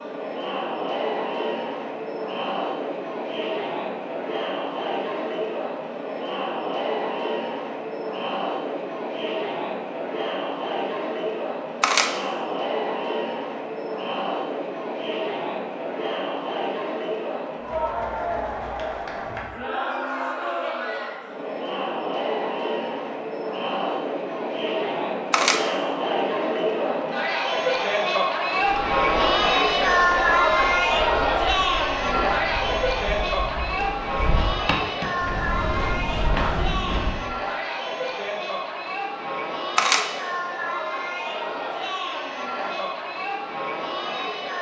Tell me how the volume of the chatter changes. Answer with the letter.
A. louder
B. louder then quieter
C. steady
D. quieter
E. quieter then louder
B.